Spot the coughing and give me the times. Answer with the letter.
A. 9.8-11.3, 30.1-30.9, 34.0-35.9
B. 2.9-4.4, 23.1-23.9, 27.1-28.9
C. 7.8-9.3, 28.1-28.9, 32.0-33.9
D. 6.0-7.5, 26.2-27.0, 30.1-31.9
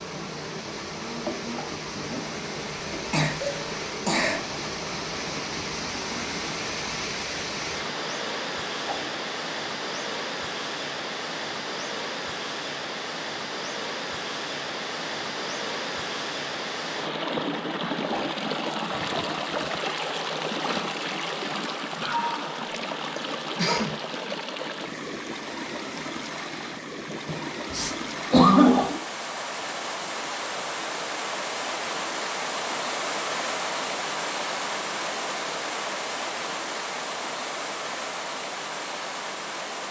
B.